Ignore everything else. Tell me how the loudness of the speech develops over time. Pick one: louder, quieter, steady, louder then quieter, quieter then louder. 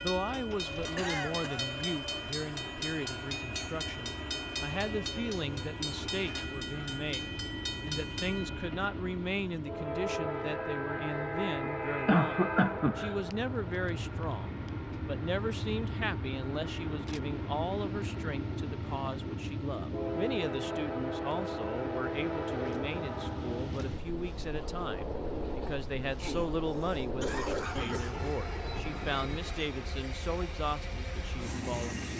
steady.